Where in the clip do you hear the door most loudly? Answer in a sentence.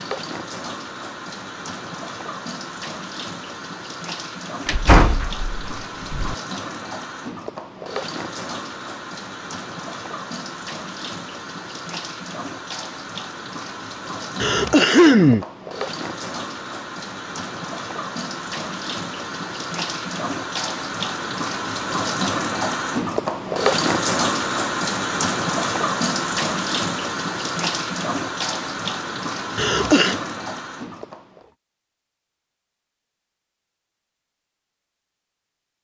The loudest moment of the door is at 5 seconds.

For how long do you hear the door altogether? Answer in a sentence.
You can hear the door for 2 seconds altogether.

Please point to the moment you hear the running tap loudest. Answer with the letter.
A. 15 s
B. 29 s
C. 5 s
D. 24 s
D.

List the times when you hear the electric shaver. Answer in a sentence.
The electric shaver can't be heard in this clip.